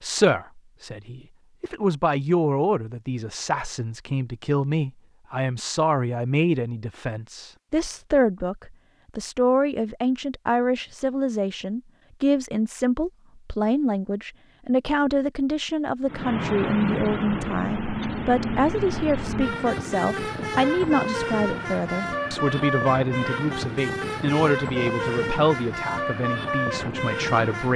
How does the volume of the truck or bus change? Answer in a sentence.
The loudness of the truck or bus stays about the same.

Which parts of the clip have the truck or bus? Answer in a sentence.
You can hear the truck or bus from 16.1 to 27.7 s.